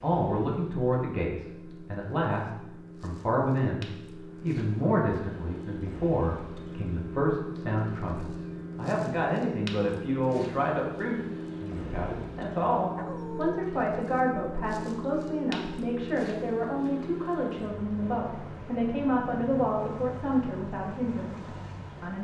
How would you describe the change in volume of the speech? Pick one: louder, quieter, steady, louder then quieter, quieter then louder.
steady.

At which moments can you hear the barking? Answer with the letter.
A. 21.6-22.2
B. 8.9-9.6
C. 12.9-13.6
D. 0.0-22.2
C.